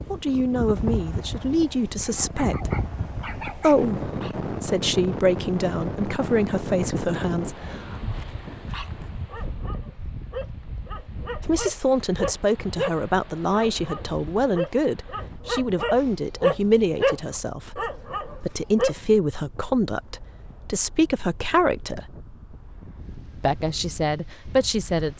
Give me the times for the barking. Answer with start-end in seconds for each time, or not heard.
2.0-4.3, 8.7-18.9.